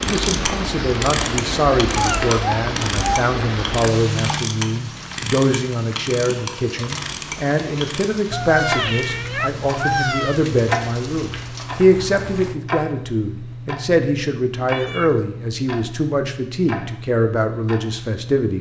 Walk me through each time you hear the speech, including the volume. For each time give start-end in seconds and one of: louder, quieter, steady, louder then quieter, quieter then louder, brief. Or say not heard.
0.0-18.5 steady.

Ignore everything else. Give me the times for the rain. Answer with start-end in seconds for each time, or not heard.
0.0-12.6.